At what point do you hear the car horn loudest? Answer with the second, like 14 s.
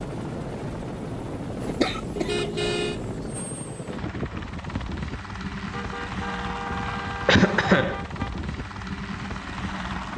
3 s.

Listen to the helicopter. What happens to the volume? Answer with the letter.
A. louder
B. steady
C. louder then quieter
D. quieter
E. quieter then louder
B.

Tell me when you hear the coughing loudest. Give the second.
8 s.